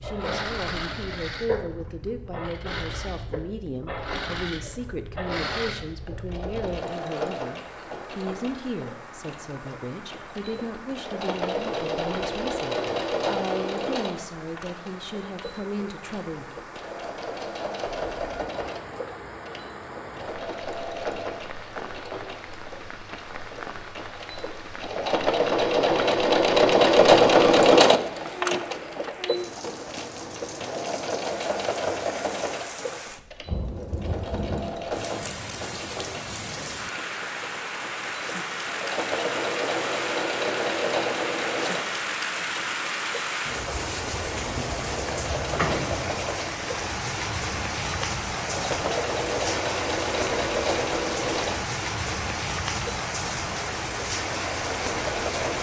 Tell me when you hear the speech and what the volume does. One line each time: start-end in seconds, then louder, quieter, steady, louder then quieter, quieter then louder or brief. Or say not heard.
0.0-16.6 steady.